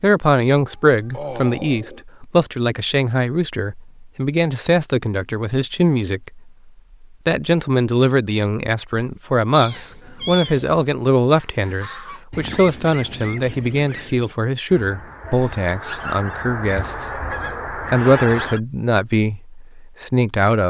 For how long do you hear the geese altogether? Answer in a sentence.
You can hear the geese for 7 seconds altogether.